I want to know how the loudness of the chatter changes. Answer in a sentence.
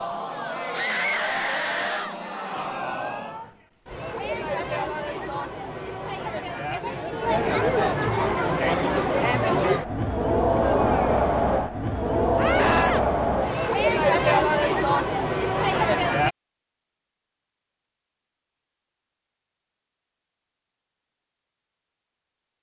The volume of the chatter goes up.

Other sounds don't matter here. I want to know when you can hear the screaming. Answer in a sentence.
You can hear the screaming from 0.7 to 2.2 s, from 12.3 to 13.0 s and from 15.5 to 16.1 s.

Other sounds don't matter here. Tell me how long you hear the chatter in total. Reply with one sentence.
The chatter can be heard for 16 seconds in total.